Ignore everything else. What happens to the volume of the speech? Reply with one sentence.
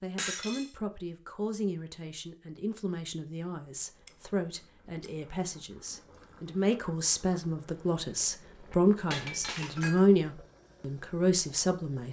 The volume of the speech goes up.